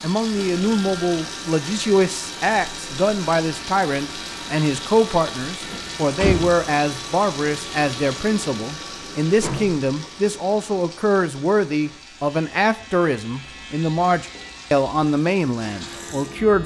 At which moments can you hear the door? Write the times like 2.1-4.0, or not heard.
5.7-6.5, 9.4-10.2.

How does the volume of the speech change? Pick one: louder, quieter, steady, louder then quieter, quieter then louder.
steady.